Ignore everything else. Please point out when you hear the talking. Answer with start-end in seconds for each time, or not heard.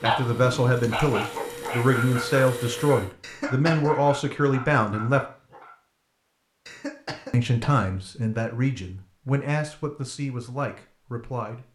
0.0-5.2, 7.3-11.7.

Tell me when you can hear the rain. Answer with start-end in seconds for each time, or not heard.
not heard.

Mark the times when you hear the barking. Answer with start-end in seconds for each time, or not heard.
0.0-5.8.